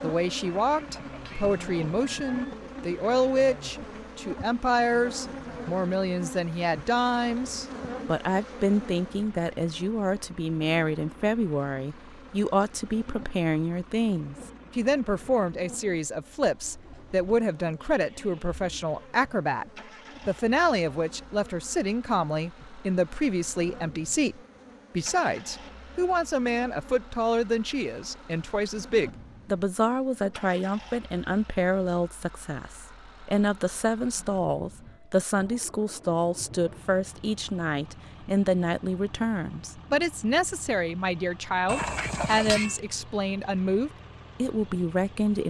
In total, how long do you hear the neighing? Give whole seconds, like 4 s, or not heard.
3 s.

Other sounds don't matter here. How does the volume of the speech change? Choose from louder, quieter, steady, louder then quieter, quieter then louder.
steady.